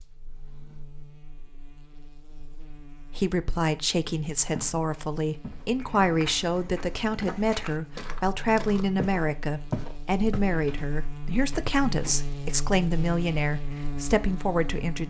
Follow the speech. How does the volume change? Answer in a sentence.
The volume of the speech stays about the same.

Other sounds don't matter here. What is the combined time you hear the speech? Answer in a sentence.
The speech can be heard for 12 seconds in total.